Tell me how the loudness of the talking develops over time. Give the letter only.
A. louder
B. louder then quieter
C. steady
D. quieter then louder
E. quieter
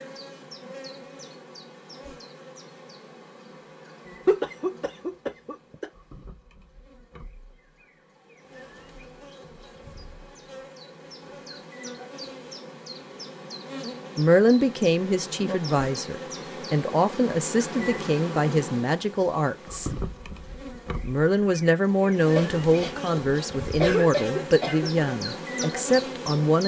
C.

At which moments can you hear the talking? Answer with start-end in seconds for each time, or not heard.
14.2-19.9, 21.0-26.6.